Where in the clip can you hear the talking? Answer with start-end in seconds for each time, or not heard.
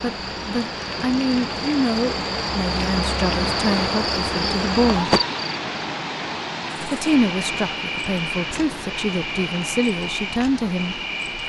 0.0-5.2, 6.8-10.9.